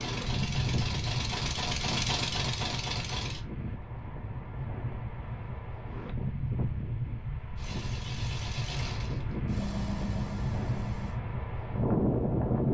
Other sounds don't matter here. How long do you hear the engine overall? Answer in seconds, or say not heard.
7 s.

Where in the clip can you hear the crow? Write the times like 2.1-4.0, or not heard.
not heard.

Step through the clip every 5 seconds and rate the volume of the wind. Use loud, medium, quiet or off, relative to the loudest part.
medium, medium, loud.